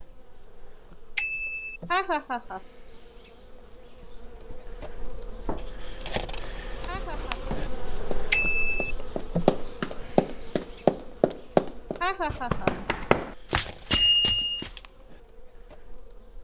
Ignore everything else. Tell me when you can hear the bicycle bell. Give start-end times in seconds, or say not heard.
1.1-1.8, 8.3-8.9, 13.9-14.4.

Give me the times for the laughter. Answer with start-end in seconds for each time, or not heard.
1.9-2.6, 6.8-7.3, 12.0-12.7.